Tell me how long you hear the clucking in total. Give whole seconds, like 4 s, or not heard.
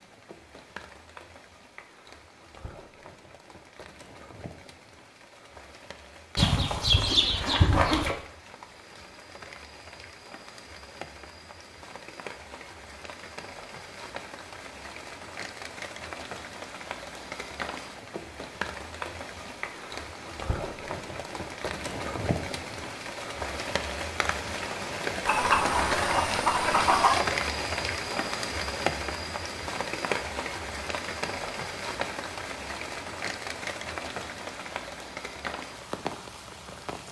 4 s.